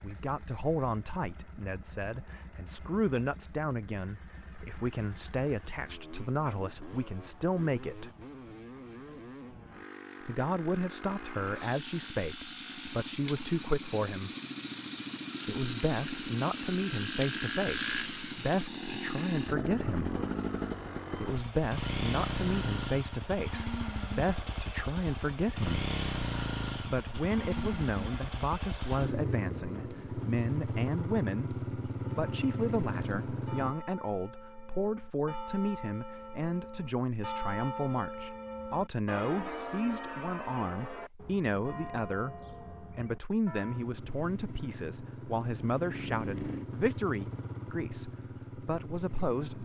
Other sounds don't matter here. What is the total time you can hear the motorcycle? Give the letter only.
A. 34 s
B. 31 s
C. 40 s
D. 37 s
C.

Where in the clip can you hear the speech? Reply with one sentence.
You can hear the speech from 0.0 to 8.1 s, from 10.2 to 14.3 s, from 15.4 to 20.1 s, from 21.2 to 25.9 s and from 26.9 to 49.6 s.